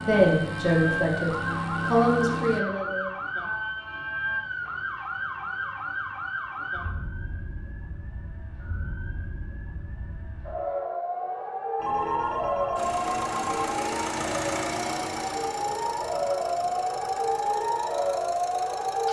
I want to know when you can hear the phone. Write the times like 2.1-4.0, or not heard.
1.2-2.5, 11.8-13.8.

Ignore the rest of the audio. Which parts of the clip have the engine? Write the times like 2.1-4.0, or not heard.
0.0-2.6, 12.8-19.0.